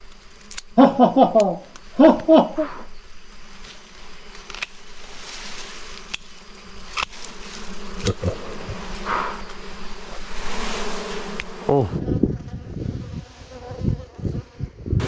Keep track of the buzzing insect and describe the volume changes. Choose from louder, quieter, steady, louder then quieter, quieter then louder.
louder.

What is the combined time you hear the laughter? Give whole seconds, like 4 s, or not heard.
3 s.